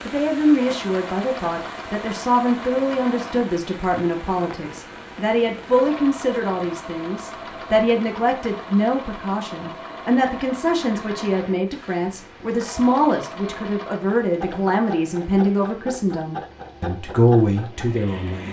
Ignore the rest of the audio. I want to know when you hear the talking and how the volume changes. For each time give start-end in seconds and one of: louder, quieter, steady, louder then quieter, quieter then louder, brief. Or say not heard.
0.1-18.4 steady.